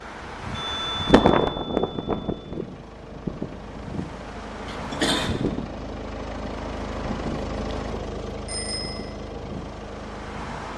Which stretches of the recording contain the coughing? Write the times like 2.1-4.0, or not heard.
4.7-5.3.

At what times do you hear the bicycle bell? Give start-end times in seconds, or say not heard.
0.5-2.5, 8.4-9.2.